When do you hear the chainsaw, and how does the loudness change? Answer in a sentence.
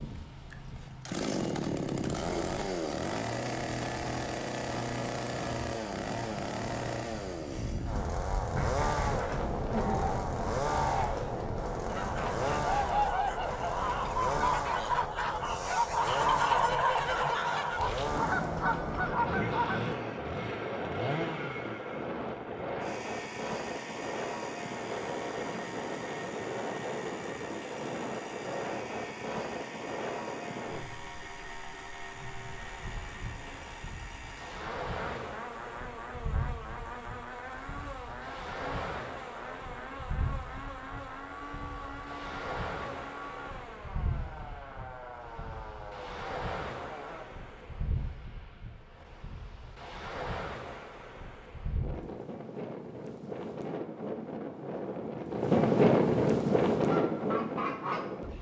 The chainsaw can be heard from 0.0 to 47.3 s, getting quieter.